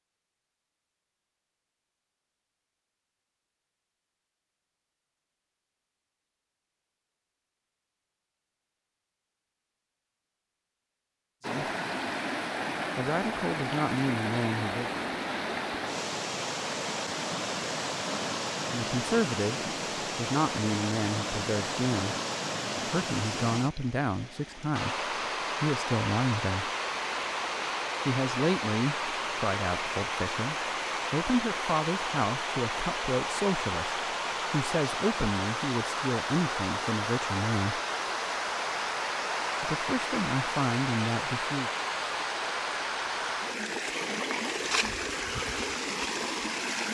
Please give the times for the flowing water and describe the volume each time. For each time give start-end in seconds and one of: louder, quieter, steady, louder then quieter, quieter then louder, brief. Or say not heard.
11.4-46.8 steady.